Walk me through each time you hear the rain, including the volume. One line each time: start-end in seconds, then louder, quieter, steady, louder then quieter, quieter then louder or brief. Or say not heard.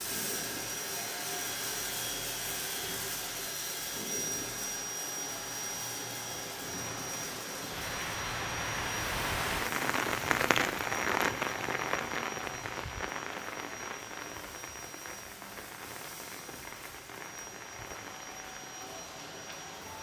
0.0-19.9 louder then quieter.